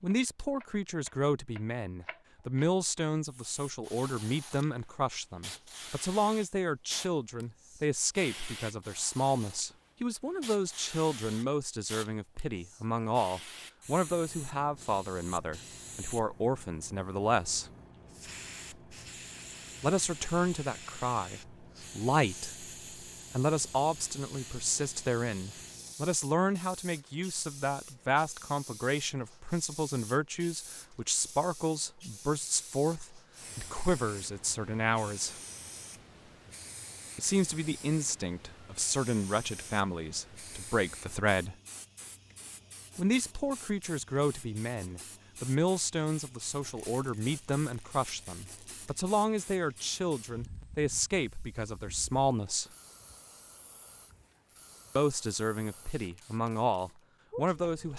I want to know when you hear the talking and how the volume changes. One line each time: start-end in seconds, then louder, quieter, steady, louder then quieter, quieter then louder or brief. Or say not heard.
0.0-17.7 steady
19.8-22.6 brief
23.3-35.4 steady
37.1-41.5 steady
43.0-52.6 steady
55.0-57.9 brief.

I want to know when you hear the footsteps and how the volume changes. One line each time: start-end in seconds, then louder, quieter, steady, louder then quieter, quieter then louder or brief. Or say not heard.
not heard.